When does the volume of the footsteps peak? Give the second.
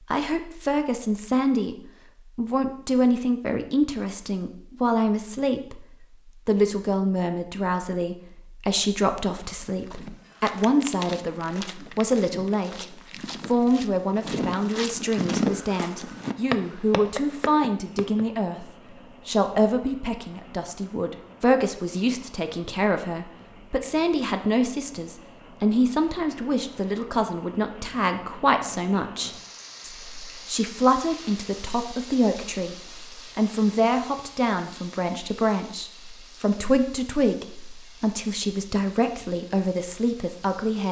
15 s.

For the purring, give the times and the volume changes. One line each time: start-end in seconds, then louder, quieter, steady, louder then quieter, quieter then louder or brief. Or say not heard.
not heard.